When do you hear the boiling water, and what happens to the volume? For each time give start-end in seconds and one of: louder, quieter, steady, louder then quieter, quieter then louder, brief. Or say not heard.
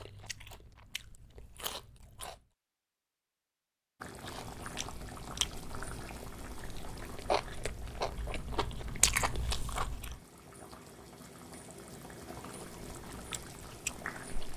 4.0-14.5 quieter then louder.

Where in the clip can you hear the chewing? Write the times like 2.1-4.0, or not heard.
0.0-2.4, 4.2-10.2, 12.6-14.5.